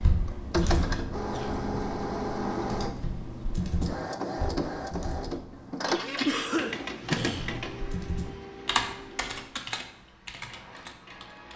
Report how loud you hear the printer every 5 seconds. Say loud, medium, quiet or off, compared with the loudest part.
loud, loud, quiet.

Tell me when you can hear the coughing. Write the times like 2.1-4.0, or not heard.
0.6-1.7, 6.2-7.7.